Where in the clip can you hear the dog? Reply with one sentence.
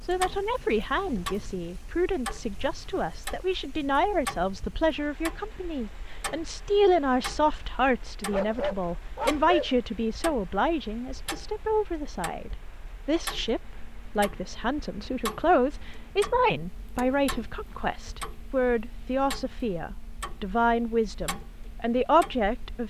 You can hear the dog from 8.3 to 9.8 s.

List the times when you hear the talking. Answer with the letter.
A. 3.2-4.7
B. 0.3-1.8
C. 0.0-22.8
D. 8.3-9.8
C.